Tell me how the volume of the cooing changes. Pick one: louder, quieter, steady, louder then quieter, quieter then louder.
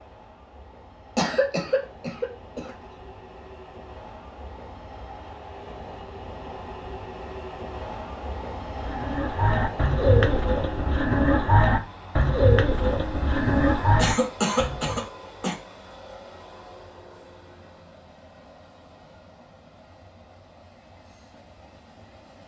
steady.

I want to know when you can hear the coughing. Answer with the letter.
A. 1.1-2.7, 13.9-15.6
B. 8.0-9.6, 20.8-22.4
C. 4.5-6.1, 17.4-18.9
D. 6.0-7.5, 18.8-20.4
A.